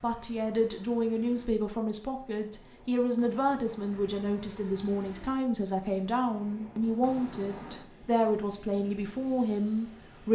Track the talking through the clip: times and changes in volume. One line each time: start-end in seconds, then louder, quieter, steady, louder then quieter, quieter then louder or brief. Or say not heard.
0.0-10.2 steady.